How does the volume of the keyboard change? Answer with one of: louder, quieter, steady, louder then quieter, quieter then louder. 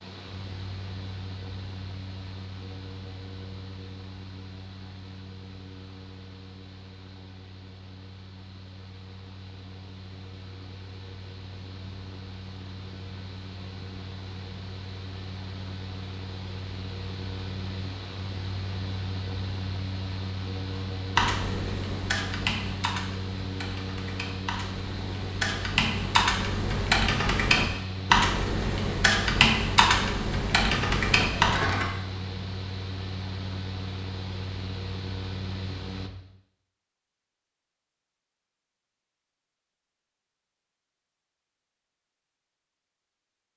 quieter then louder.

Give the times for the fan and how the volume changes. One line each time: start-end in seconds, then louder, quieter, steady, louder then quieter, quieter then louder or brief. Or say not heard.
0.0-36.1 louder.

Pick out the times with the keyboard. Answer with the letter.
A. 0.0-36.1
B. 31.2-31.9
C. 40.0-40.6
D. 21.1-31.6
D.